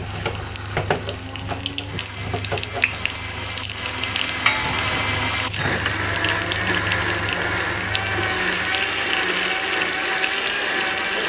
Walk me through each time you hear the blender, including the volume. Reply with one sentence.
You can hear the blender from 0.0 to 11.2 s, getting louder.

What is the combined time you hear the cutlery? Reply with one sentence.
The cutlery can't be heard in this clip.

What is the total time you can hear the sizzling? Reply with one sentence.
You can hear the sizzling for 11 seconds altogether.